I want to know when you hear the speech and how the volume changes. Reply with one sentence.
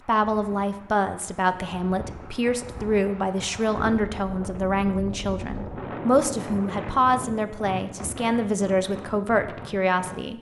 You can hear the speech from 0.1 to 10.3 s, at a steady volume.